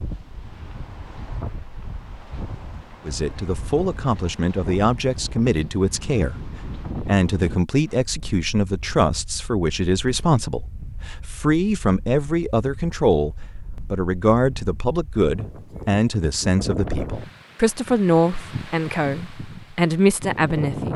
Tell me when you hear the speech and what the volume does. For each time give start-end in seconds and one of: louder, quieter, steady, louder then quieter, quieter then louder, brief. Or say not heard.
3.0-20.9 steady.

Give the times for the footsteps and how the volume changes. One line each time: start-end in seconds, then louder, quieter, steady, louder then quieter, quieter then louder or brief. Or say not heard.
not heard.